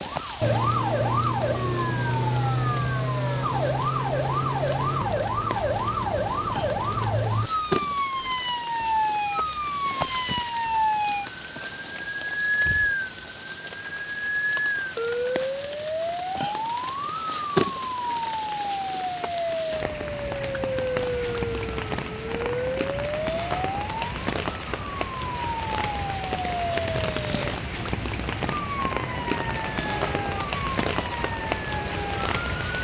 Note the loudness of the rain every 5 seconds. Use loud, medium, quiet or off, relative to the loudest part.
medium, medium, medium, loud, loud, loud, loud.